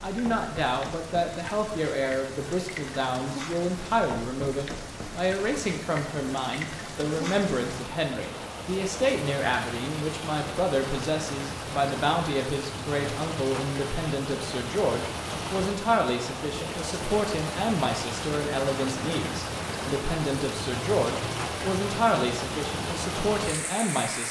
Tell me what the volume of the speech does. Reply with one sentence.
The loudness of the speech stays about the same.